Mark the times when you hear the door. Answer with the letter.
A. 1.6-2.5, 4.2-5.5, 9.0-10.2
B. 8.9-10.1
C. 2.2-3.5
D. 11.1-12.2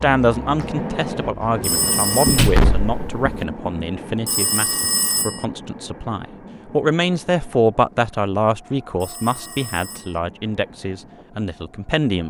C.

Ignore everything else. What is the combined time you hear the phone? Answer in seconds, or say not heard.
3 s.